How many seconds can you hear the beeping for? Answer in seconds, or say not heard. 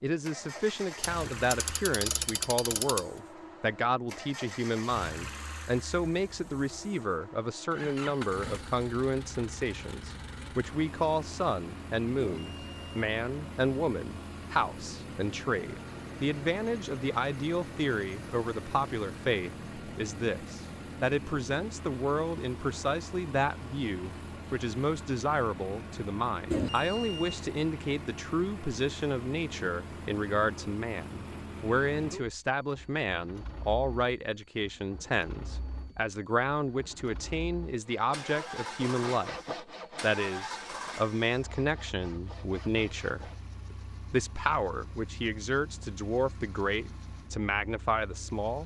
2 s.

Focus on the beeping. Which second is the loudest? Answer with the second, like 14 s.
27 s.